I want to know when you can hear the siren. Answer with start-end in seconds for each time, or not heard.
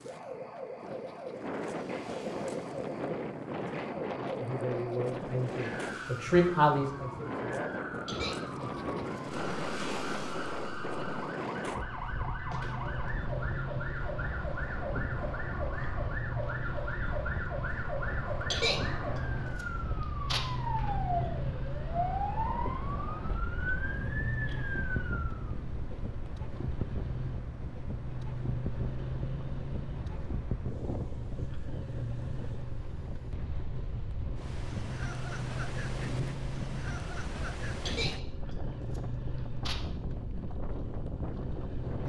0.0-25.6.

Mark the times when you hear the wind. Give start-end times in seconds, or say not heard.
0.0-42.0.